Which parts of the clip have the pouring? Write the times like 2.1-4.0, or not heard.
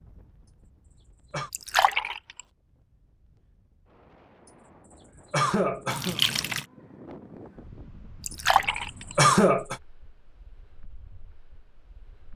1.5-2.4, 5.9-6.7, 8.2-9.2.